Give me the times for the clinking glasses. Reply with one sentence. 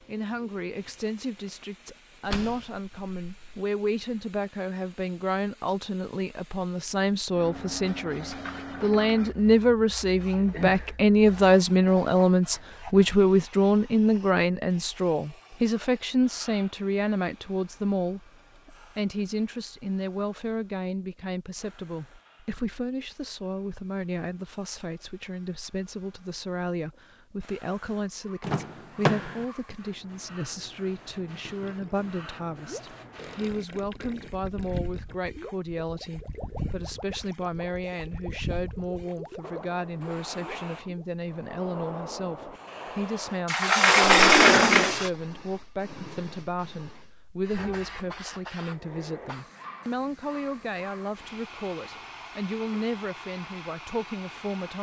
You can't hear the clinking glasses here.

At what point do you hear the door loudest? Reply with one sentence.
The loudest moment of the door is at 44 seconds.